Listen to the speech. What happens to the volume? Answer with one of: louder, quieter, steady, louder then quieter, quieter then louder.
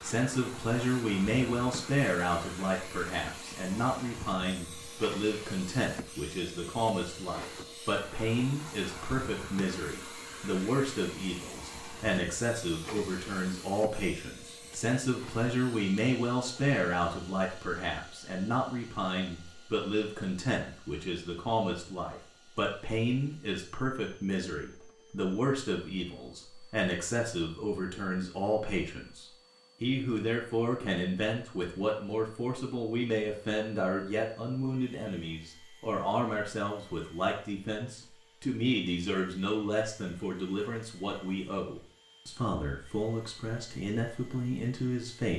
steady.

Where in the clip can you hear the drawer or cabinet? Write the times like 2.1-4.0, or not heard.
not heard.